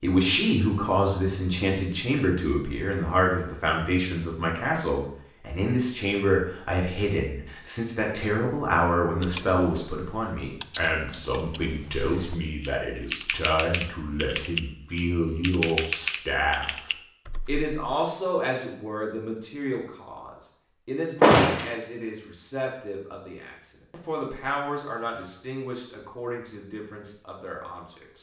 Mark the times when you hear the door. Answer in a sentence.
You can hear the door from 21.2 to 21.8 s.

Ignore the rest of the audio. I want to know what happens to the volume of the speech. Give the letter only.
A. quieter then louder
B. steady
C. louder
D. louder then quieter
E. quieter
E.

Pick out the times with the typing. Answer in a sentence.
The typing can be heard from 9.2 to 17.7 s.